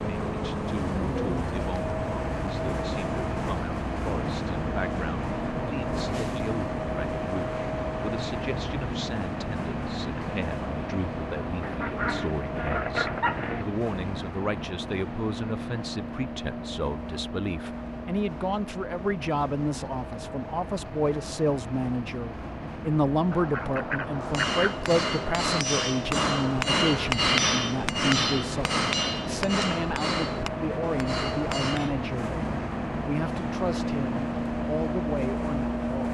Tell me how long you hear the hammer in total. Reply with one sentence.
The hammer can be heard for 8 seconds in total.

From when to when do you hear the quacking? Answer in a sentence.
You can hear the quacking from 11.6 to 13.7 s and from 23.3 to 24.8 s.